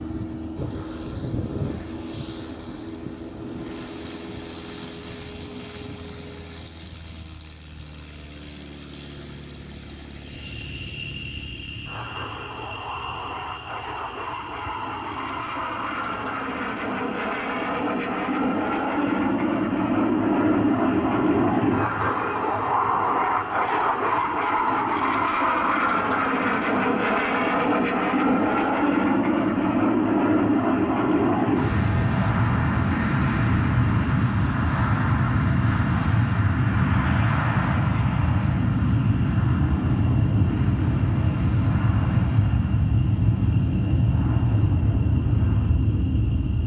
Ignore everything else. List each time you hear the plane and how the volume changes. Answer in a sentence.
You can hear the plane from 0.0 to 46.6 s, getting louder.